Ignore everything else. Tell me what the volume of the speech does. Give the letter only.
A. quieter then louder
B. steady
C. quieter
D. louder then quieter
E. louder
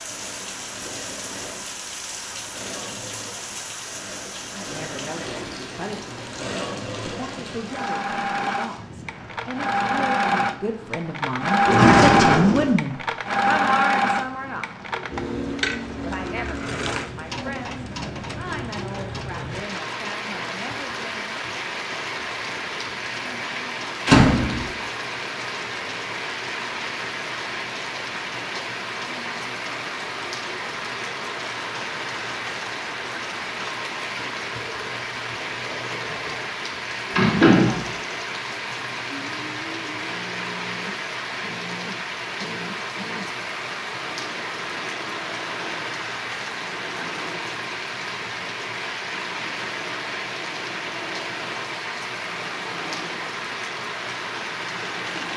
D.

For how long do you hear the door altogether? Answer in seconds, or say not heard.
2 s.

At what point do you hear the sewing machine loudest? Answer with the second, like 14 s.
12 s.